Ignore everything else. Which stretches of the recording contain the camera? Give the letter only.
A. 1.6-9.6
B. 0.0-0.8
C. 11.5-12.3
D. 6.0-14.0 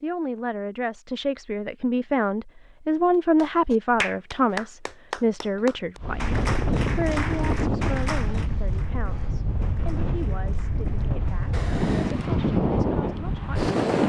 C.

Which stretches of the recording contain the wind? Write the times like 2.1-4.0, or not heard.
6.0-14.0.